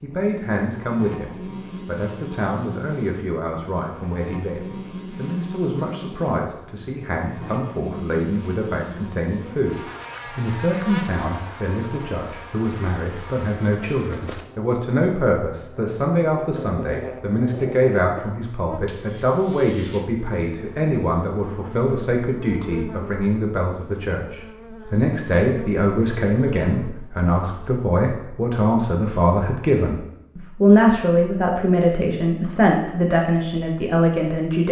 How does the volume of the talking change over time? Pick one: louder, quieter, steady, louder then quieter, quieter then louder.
louder.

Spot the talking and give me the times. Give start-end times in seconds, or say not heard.
0.0-34.6.